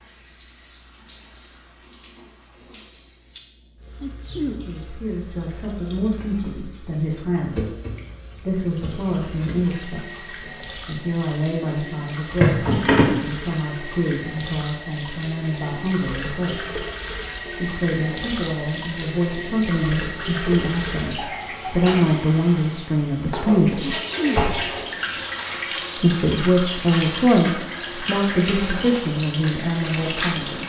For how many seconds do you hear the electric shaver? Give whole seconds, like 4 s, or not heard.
not heard.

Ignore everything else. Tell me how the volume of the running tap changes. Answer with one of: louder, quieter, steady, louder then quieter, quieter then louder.
louder.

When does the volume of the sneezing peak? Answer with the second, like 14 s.
24 s.